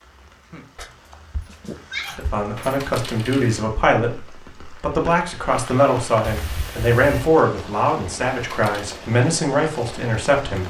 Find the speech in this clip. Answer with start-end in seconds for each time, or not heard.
2.1-10.6.